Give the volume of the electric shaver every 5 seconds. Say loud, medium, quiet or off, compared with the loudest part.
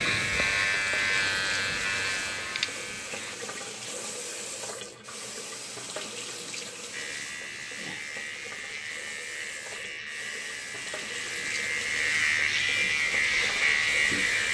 loud, medium, loud.